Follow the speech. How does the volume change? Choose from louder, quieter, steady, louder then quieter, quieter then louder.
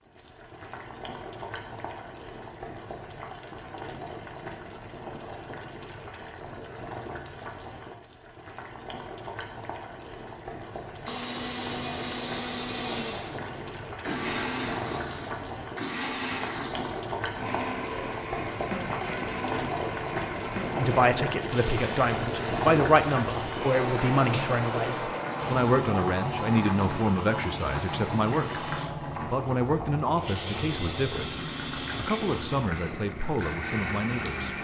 quieter.